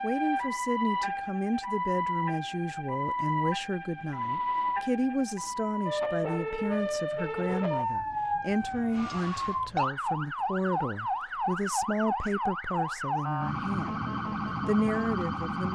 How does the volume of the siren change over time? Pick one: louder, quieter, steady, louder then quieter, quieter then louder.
steady.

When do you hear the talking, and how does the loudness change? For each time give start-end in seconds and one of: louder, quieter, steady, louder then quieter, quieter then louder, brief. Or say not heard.
0.0-14.1 steady
14.7-15.7 brief.